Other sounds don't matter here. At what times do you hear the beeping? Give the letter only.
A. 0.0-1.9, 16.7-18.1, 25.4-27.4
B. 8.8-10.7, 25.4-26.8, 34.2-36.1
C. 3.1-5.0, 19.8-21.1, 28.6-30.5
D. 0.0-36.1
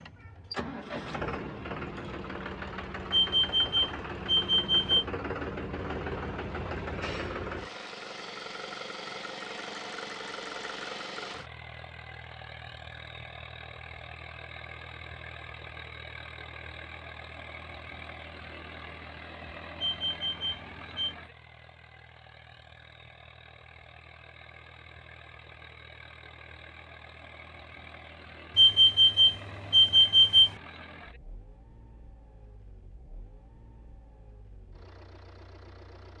C.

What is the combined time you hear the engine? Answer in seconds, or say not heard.
36 s.